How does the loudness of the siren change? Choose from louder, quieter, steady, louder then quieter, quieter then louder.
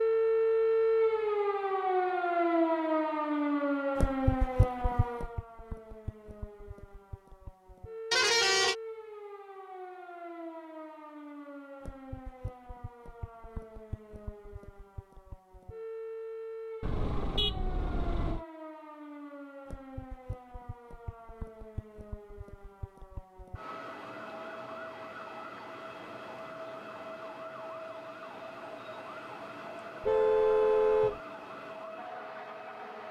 quieter.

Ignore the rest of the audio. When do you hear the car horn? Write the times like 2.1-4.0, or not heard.
8.1-8.8, 16.8-18.4, 30.0-31.2.